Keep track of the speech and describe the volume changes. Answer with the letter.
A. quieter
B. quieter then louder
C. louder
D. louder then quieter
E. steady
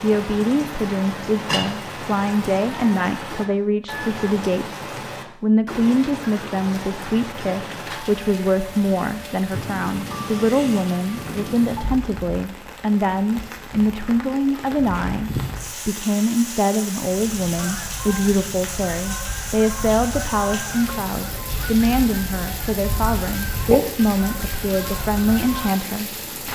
E.